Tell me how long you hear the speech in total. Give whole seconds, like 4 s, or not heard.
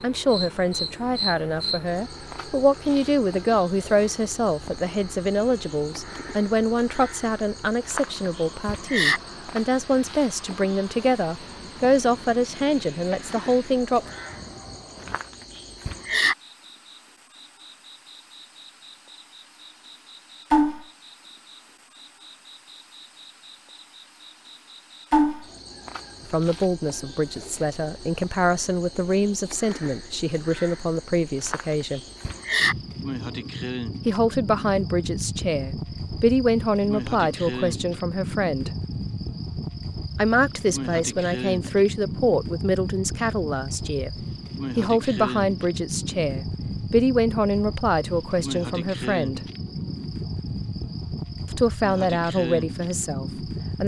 35 s.